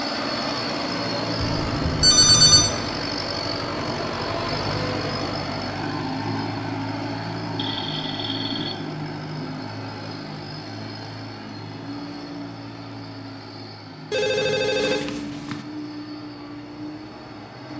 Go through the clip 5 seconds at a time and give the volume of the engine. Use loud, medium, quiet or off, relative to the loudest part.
loud, loud, medium, medium.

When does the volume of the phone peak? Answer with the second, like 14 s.
2 s.